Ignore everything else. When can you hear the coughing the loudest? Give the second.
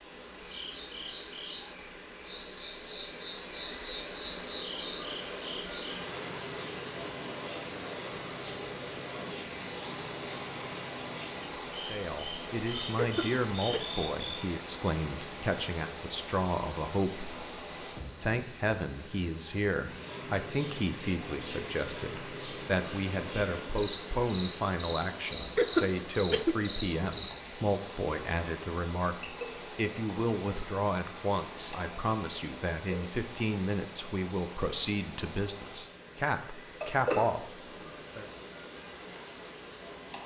26 s.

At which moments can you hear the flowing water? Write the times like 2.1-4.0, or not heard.
0.0-40.2.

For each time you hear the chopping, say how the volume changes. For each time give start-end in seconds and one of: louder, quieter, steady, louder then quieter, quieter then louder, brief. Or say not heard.
not heard.